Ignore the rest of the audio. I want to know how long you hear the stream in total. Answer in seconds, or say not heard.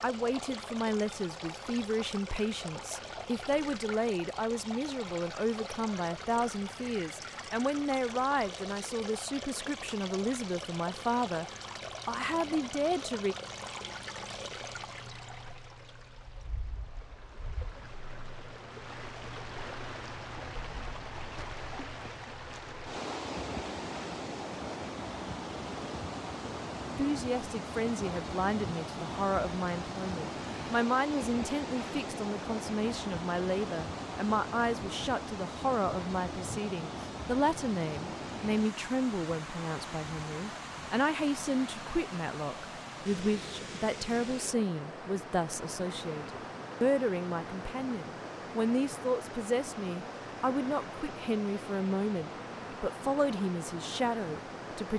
55 s.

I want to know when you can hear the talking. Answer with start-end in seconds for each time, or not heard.
0.0-13.3, 26.9-54.9.